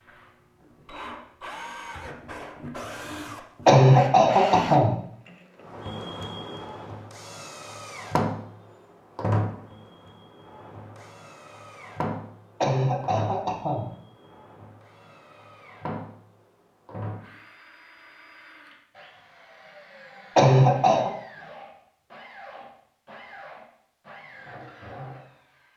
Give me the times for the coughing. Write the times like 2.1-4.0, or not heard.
3.6-5.0, 12.6-13.9, 20.4-21.1.